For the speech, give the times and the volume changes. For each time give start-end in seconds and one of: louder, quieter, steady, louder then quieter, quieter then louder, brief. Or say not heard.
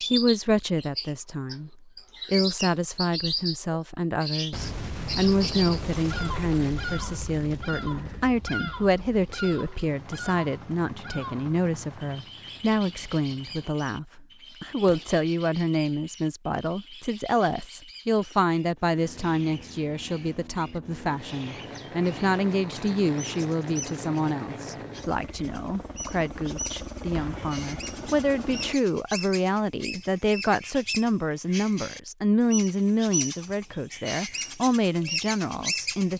0.1-36.1 steady.